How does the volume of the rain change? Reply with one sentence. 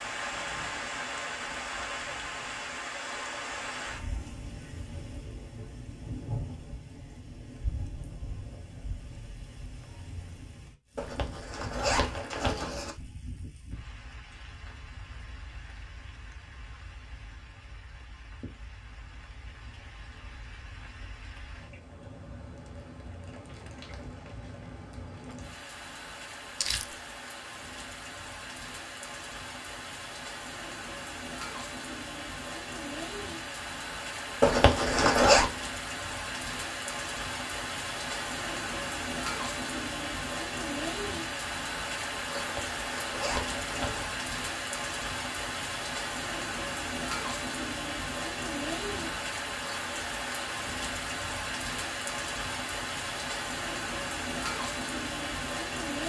The volume of the rain goes down, then up.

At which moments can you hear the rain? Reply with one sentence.
You can hear the rain from 0.0 to 56.0 s.